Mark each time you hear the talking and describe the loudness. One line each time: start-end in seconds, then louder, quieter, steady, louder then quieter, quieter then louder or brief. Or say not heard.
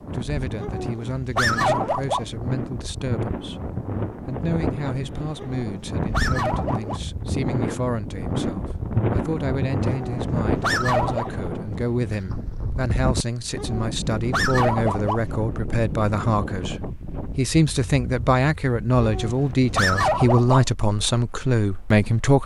0.0-22.4 louder.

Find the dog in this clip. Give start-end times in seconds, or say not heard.
0.6-2.2, 5.3-7.0, 9.8-11.4, 13.6-15.2, 19.0-20.6.